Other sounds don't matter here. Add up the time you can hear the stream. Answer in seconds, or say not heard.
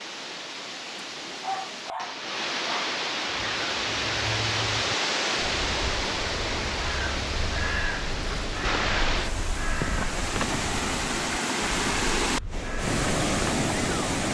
14 s.